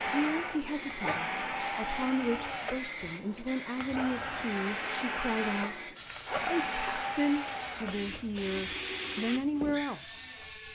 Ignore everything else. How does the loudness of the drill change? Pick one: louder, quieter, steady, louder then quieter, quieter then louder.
steady.